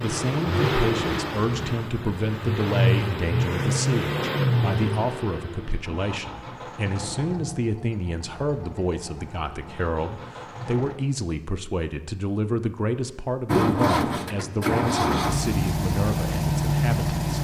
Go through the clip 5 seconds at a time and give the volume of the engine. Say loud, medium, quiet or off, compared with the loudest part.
loud, quiet, loud, loud.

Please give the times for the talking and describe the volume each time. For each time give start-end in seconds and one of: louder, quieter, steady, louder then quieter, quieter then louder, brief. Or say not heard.
0.0-17.3 steady.